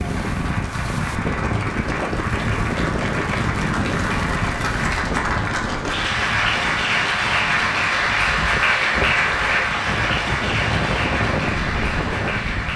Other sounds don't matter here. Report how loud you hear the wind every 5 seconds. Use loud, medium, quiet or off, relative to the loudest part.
loud, medium, loud.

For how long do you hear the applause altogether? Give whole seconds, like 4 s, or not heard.
13 s.